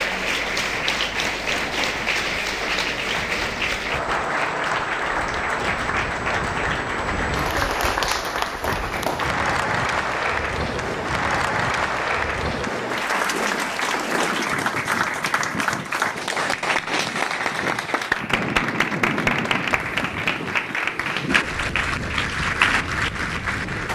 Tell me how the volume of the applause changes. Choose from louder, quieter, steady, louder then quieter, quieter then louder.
steady.